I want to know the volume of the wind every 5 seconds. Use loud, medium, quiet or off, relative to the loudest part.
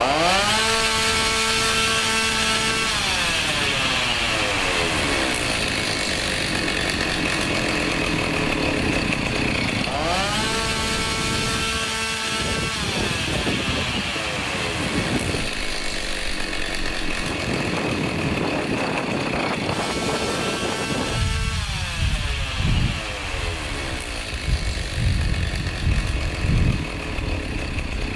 medium, medium, loud, loud, loud, loud.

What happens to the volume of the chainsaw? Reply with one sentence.
The volume of the chainsaw goes down.